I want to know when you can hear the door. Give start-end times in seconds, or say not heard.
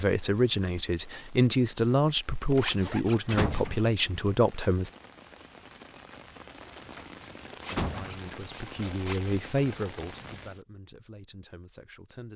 2.5-3.9, 7.0-8.3.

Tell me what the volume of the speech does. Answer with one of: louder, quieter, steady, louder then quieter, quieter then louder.
quieter.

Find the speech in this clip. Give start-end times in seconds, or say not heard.
0.0-4.9, 7.8-12.3.